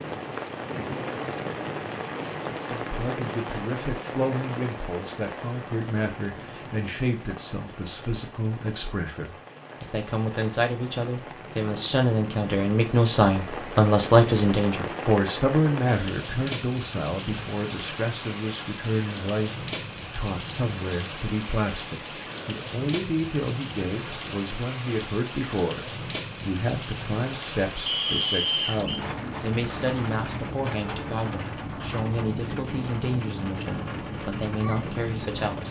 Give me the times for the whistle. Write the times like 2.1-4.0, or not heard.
27.9-29.1.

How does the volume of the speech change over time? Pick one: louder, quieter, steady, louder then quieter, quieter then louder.
louder then quieter.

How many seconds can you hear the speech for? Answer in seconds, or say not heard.
33 s.